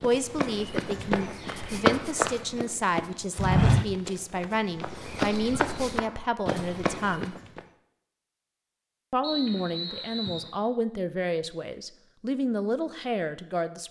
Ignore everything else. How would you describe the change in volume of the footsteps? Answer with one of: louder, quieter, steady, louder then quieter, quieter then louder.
louder then quieter.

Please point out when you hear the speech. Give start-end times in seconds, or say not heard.
0.0-7.3, 9.1-13.8.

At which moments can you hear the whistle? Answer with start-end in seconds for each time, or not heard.
9.2-10.5.